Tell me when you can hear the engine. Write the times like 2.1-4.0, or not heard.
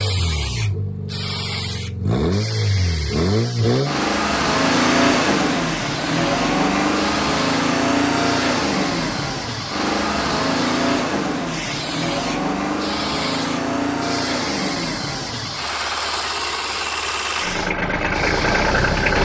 0.0-19.2.